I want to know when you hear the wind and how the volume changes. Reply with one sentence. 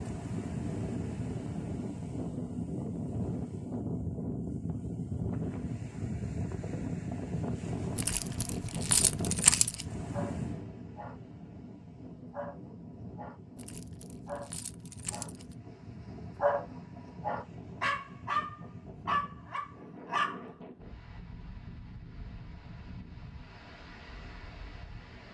The wind can be heard from 0.0 to 25.3 s, getting quieter.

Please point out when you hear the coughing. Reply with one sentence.
You can't hear the coughing here.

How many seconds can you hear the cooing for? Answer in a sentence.
You can't hear the cooing here.